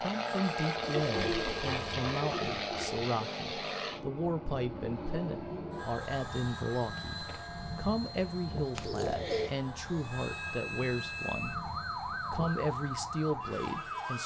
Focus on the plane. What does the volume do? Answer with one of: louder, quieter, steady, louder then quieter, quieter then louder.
quieter.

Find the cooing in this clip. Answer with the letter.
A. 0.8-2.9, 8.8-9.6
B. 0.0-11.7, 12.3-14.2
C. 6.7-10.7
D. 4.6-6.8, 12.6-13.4
A.